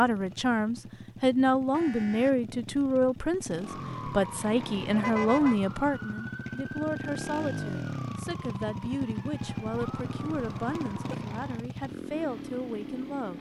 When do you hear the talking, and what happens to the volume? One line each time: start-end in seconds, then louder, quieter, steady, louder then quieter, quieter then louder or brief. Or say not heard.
0.0-13.3 quieter.